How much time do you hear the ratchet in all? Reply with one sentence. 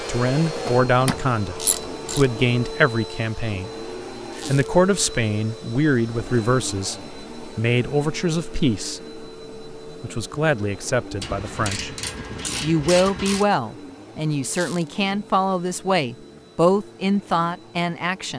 You can hear the ratchet for 4 seconds altogether.